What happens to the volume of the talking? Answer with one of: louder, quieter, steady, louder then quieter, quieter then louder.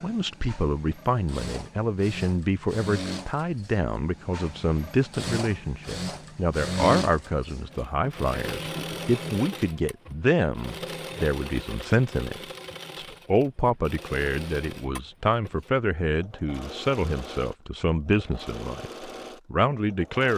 steady.